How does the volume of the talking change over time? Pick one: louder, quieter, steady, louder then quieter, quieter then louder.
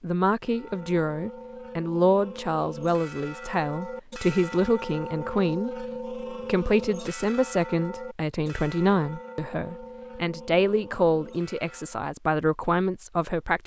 steady.